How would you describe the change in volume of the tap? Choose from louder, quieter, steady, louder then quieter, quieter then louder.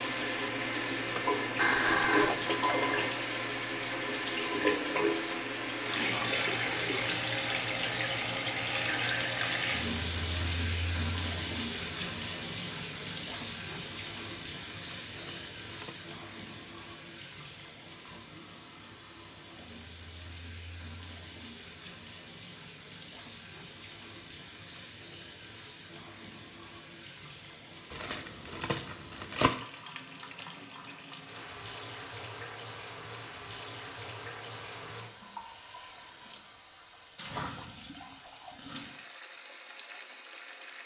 quieter.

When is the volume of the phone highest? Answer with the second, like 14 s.
2 s.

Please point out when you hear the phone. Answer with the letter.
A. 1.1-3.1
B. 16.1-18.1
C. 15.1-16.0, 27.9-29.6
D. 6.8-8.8
A.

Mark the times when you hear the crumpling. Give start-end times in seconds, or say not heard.
15.1-16.0, 27.9-29.6.